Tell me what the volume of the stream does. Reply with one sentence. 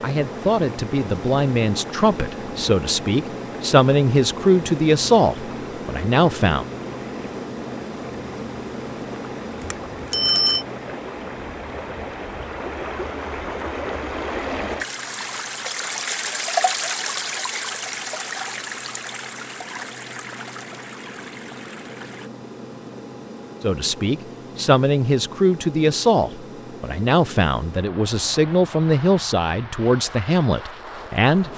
The volume of the stream goes up, then down.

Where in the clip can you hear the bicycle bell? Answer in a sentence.
You can hear the bicycle bell from 9.6 to 10.7 s.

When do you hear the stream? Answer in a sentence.
You can hear the stream from 0.1 to 22.3 s.